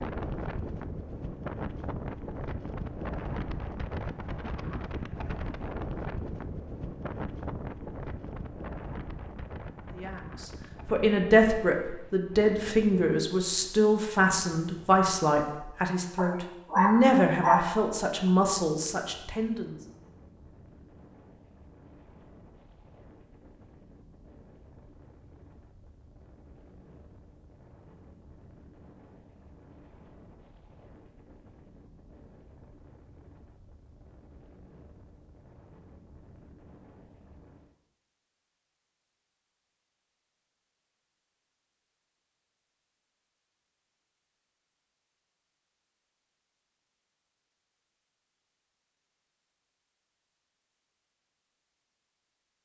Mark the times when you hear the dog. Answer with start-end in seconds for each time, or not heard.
16.1-18.3.